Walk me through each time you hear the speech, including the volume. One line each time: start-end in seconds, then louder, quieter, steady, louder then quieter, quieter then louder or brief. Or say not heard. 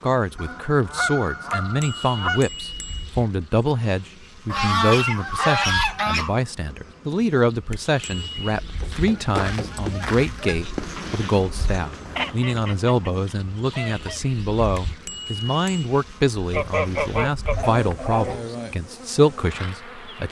0.0-20.2 steady.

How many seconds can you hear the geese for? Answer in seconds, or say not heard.
10 s.